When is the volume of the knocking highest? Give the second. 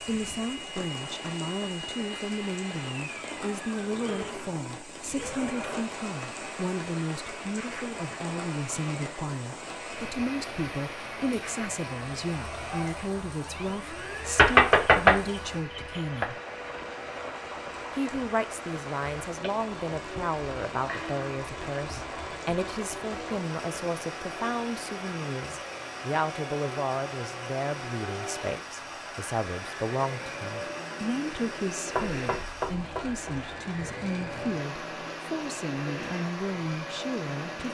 15 s.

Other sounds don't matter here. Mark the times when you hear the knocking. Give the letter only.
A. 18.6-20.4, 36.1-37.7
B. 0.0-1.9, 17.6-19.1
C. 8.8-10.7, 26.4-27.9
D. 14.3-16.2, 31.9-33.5
D.